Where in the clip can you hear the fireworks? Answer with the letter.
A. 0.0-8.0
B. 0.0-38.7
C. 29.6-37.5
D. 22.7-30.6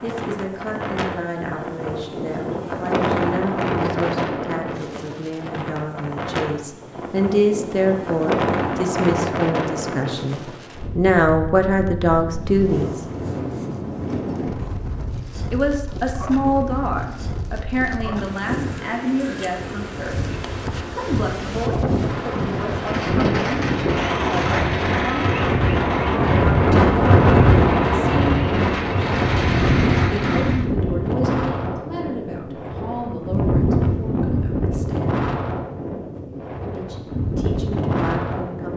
D.